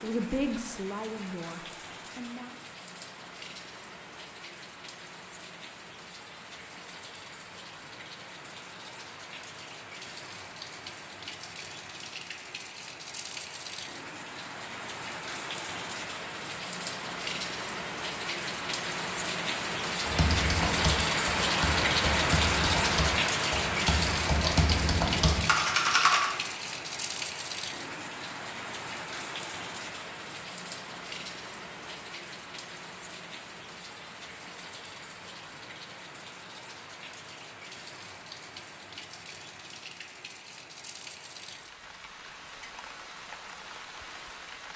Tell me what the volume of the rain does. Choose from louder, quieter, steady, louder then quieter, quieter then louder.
louder then quieter.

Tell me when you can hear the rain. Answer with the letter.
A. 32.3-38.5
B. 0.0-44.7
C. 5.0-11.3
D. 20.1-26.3
B.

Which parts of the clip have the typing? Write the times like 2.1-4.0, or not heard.
20.1-26.3.